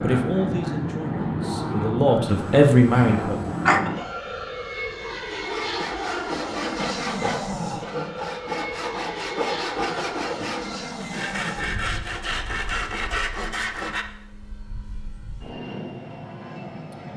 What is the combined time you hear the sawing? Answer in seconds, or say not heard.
9 s.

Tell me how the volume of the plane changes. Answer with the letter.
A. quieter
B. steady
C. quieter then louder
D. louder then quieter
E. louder
A.